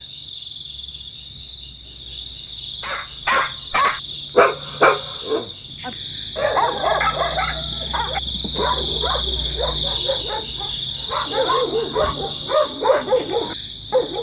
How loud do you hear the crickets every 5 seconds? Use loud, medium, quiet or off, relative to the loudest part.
medium, loud, loud.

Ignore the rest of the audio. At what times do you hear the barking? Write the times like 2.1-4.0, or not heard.
2.8-14.1.